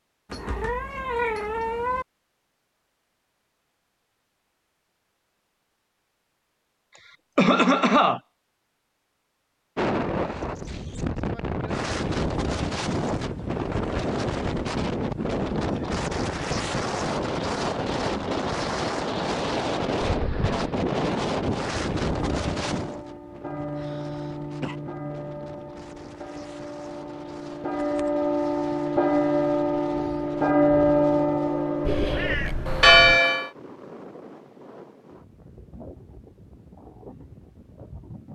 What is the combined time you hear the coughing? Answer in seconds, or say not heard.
2 s.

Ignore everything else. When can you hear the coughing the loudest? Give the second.
8 s.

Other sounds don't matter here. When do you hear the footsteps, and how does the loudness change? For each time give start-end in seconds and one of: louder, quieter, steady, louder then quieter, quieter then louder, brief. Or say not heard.
not heard.